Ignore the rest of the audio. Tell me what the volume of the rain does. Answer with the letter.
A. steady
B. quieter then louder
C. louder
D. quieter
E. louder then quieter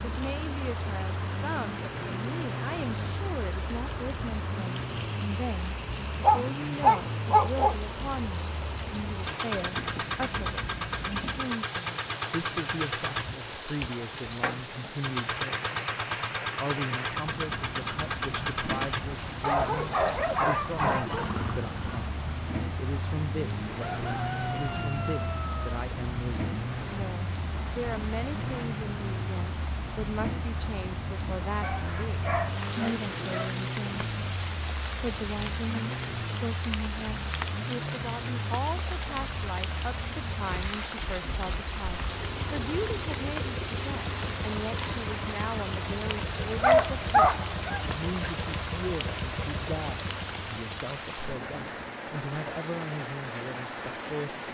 A.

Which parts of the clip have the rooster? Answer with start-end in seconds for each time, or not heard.
24.0-25.8.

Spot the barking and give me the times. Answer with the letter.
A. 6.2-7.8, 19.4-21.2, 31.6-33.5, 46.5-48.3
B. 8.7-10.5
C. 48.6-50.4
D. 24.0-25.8
A.